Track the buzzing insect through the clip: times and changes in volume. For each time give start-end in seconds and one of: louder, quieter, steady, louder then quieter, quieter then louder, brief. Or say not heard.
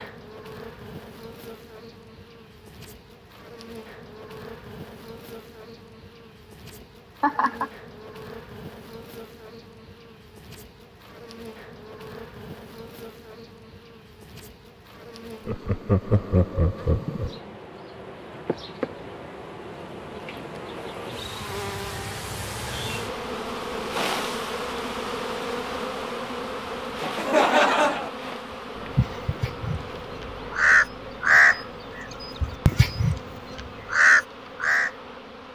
0.0-35.5 louder then quieter.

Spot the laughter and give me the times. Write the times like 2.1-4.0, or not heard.
7.2-7.7, 15.4-17.4, 27.1-28.1.